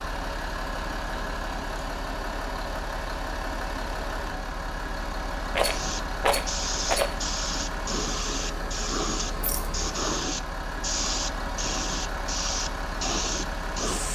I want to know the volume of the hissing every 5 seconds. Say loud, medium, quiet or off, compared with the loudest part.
off, loud, loud.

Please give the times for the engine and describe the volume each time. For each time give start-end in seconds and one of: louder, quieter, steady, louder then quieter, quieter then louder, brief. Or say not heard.
0.0-14.1 steady.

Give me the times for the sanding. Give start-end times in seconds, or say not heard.
not heard.